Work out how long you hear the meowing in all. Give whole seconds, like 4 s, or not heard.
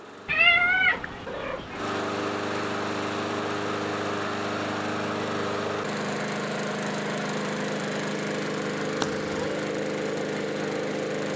2 s.